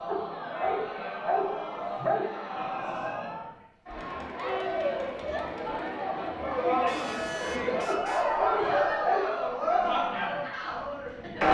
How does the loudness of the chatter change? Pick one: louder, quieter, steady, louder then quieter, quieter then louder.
louder.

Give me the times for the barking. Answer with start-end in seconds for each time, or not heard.
0.1-2.4, 7.8-9.4.